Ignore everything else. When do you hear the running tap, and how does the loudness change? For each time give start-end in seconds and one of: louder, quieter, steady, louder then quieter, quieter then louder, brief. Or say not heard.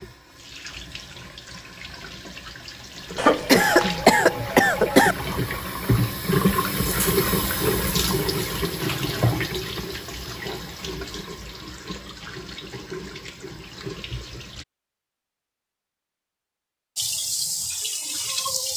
0.0-14.7 louder then quieter
16.9-18.7 brief.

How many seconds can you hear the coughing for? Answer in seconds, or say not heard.
2 s.